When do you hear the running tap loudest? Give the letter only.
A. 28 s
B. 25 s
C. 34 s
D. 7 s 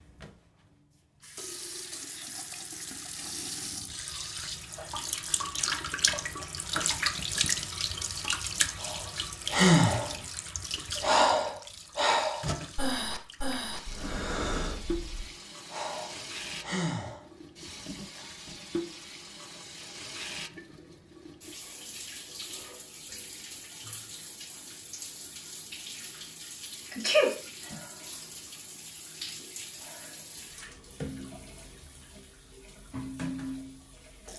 D.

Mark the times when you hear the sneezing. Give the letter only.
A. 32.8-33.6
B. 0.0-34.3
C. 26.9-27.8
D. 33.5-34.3
C.